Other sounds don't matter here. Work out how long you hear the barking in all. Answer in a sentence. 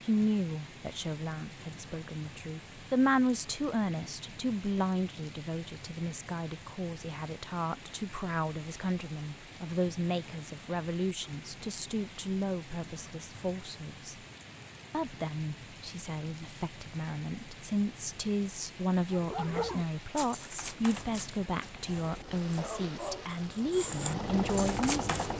You can hear the barking for 6 seconds altogether.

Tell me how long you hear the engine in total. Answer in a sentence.
You can hear the engine for 4 seconds altogether.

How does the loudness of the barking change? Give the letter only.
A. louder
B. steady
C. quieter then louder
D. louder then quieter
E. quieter
C.